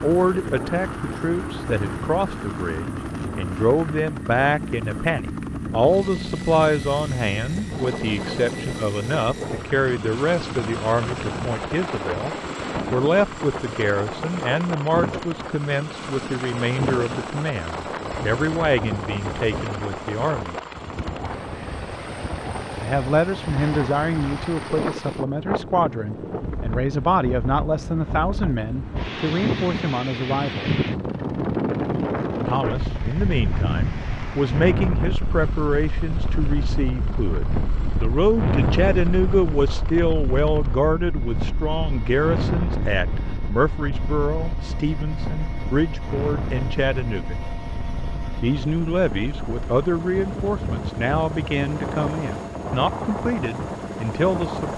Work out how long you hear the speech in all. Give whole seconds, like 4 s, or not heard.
50 s.